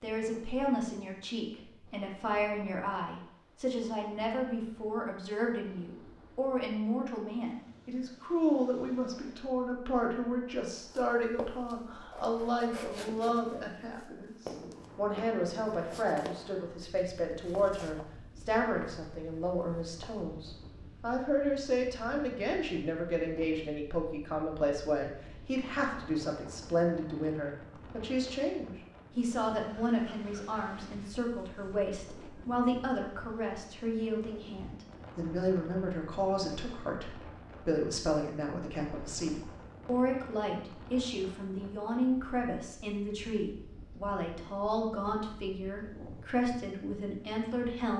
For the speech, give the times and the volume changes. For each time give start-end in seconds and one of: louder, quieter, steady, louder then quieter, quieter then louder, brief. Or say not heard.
0.0-47.9 steady.